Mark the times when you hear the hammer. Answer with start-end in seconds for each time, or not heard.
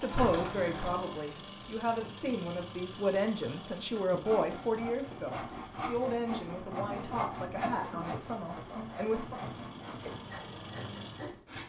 not heard.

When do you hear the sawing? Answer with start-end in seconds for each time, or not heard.
4.2-11.6.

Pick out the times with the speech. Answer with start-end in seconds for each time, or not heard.
0.0-9.4.